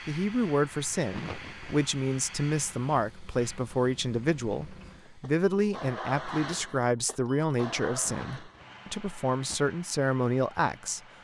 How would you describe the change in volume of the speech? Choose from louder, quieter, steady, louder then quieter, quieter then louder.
steady.